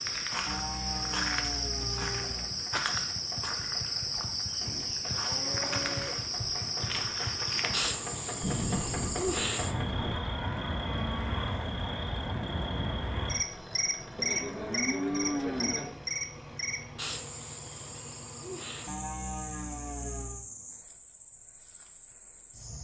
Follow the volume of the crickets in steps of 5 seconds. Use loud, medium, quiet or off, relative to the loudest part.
loud, loud, loud, medium, quiet.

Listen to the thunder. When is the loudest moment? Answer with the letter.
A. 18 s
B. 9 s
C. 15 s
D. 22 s
B.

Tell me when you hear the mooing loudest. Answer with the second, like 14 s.
15 s.